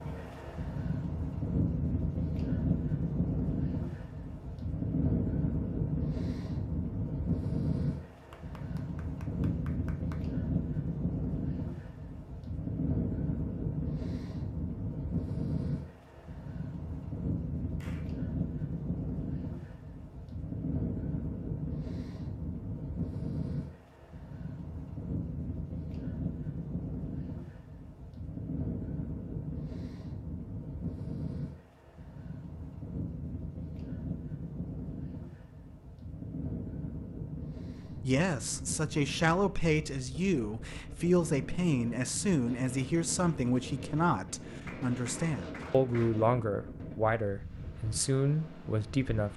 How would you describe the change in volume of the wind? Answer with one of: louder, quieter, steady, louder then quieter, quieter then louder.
quieter.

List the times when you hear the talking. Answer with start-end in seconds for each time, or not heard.
37.9-49.3.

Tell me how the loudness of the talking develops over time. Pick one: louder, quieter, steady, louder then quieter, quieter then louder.
steady.